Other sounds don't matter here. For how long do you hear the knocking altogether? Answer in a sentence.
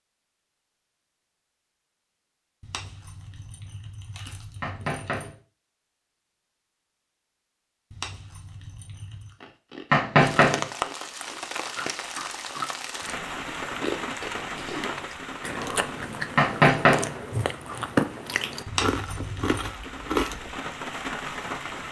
You can hear the knocking for 2 seconds altogether.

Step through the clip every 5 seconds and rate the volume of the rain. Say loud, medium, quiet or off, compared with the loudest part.
off, off, loud, medium, loud.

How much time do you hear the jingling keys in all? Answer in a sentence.
The jingling keys can be heard for 5 seconds in total.